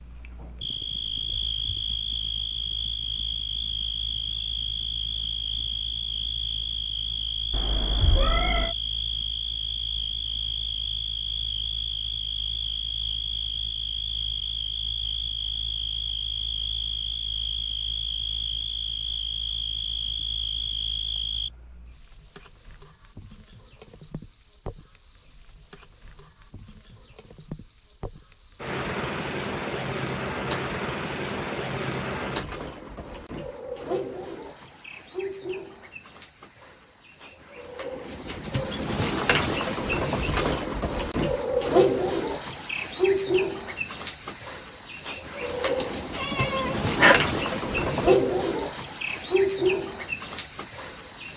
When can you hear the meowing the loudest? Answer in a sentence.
The loudest moment of the meowing is at 47 seconds.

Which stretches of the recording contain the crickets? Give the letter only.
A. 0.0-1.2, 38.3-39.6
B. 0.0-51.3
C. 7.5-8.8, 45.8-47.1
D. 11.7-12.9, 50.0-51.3
B.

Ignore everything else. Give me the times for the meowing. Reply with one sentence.
You can hear the meowing from 7.5 to 8.8 s and from 45.8 to 47.1 s.